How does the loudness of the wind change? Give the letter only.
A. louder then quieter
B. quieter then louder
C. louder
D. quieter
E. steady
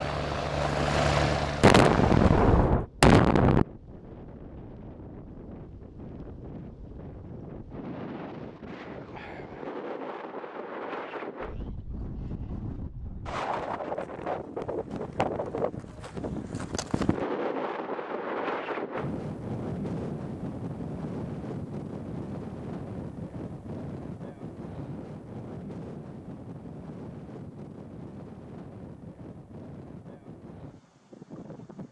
A.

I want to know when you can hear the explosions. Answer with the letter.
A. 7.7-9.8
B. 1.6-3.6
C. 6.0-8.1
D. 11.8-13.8
B.